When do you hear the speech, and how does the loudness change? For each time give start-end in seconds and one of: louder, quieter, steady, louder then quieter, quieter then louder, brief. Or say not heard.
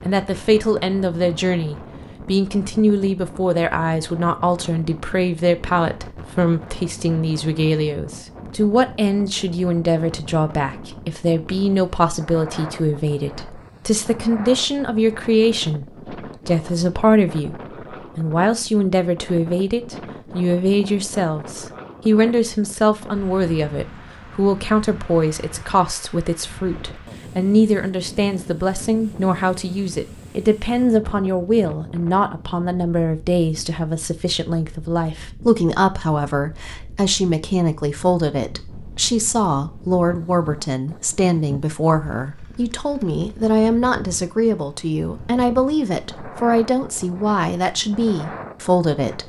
0.0-49.2 steady.